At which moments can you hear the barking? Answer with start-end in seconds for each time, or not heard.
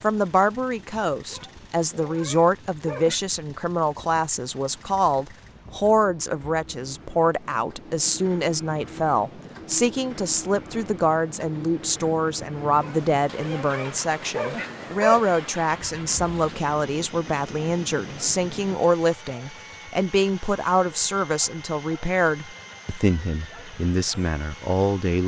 1.3-3.2, 12.8-15.3.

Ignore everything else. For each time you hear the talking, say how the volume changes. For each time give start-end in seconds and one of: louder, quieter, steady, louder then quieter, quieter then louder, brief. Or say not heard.
0.0-25.2 steady.